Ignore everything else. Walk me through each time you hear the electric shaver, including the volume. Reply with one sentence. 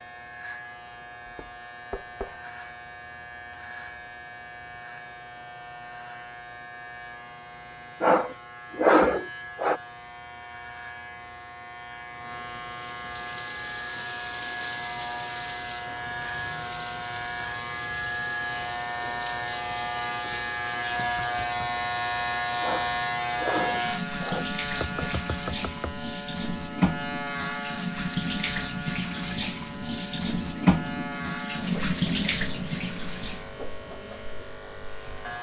The electric shaver can be heard from 0.0 to 35.3 s, getting louder then quieter.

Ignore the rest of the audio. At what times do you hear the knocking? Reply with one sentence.
You can hear the knocking from 1.2 to 2.4 s, from 20.9 to 21.9 s and from 24.8 to 25.9 s.